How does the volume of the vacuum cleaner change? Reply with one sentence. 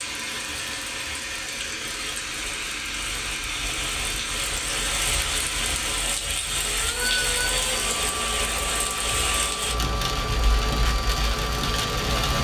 The loudness of the vacuum cleaner stays about the same.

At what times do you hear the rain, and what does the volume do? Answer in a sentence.
The rain can be heard from 0.0 to 12.4 s, getting louder.